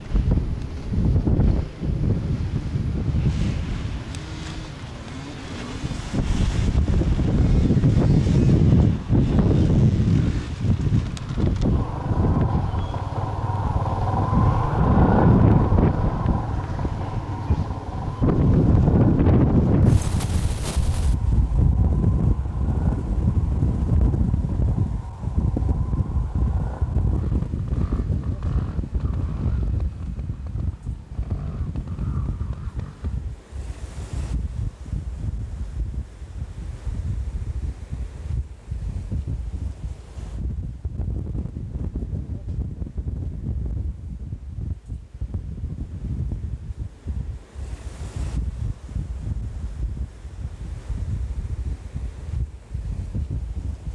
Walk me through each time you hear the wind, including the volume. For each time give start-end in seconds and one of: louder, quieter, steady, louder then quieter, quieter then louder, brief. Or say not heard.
0.0-53.9 quieter.